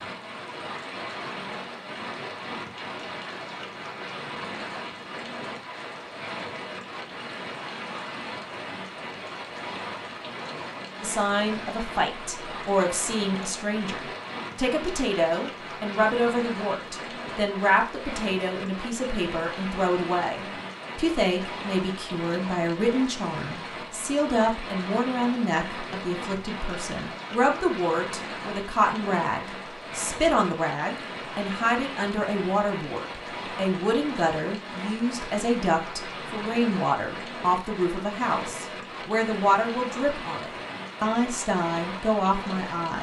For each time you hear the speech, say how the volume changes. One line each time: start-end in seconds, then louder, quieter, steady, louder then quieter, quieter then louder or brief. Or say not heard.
11.0-42.9 steady.